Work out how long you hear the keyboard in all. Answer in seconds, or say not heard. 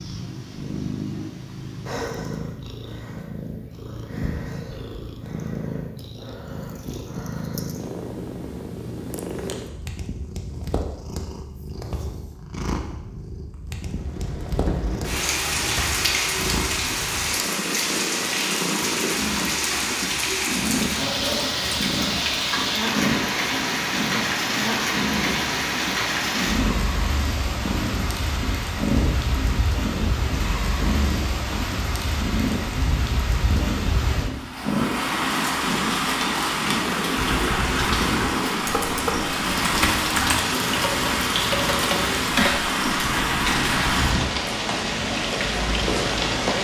7 s.